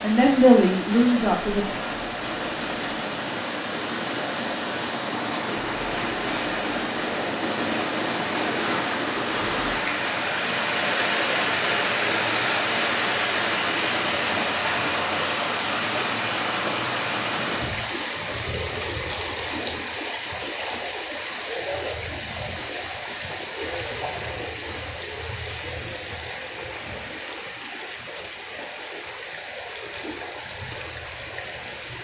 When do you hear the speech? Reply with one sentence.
You can hear the speech from 0.0 to 1.7 s.